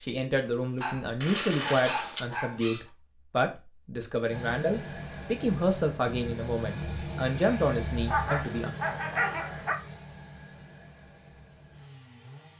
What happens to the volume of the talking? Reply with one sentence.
The loudness of the talking stays about the same.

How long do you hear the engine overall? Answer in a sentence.
The engine can be heard for 8 seconds in total.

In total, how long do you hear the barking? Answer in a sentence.
The barking can be heard for 4 seconds in total.